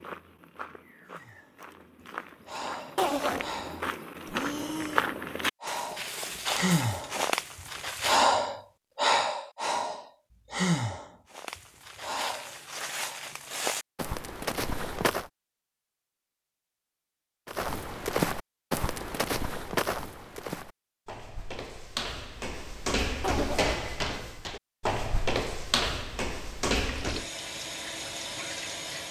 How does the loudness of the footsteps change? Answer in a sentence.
The volume of the footsteps goes up.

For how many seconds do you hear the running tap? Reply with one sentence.
The running tap can be heard for 2 seconds in total.